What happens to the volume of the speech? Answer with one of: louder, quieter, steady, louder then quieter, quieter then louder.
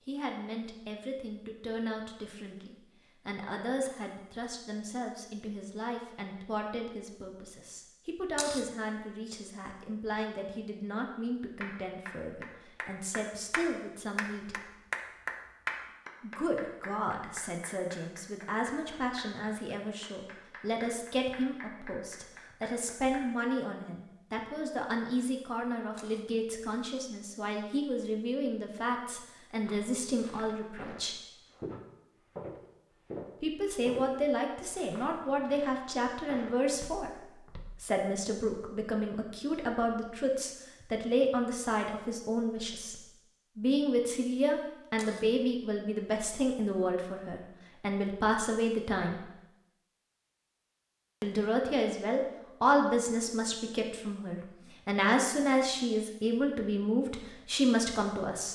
louder.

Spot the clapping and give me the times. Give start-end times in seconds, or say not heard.
11.6-23.2.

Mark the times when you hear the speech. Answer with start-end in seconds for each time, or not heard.
0.1-14.6, 16.2-31.2, 33.4-49.3, 51.2-58.5.